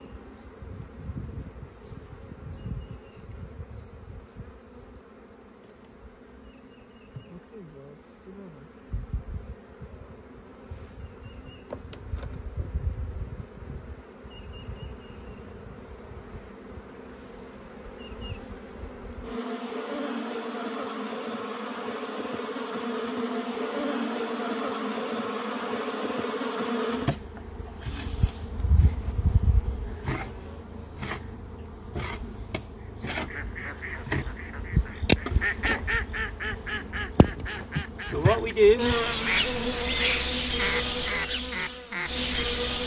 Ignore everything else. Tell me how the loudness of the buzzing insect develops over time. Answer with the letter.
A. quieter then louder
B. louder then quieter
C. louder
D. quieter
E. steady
C.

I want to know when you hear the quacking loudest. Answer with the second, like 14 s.
35 s.